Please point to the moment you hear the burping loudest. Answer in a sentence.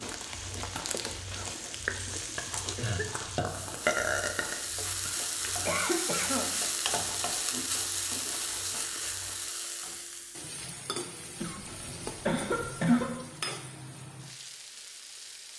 The volume of the burping peaks at 4 seconds.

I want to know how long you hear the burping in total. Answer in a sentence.
The burping can be heard for 2 seconds in total.